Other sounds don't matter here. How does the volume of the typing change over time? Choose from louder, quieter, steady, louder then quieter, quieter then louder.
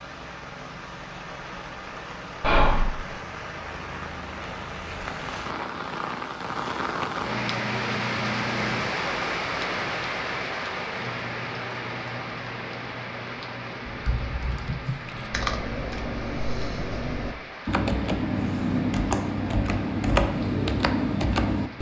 louder.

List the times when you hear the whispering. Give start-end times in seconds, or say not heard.
2.4-2.9.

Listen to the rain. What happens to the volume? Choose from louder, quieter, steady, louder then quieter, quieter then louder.
louder then quieter.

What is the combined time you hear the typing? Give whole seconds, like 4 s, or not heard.
8 s.